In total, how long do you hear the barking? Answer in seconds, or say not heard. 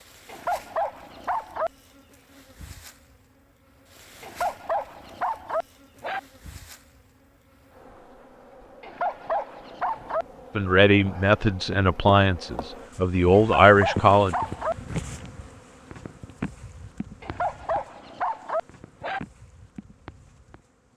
8 s.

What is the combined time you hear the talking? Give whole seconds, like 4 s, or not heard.
4 s.